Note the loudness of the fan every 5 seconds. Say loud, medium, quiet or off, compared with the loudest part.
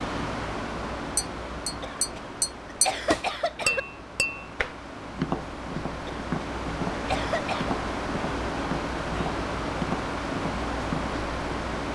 medium, loud, loud.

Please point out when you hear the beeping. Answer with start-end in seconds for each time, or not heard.
not heard.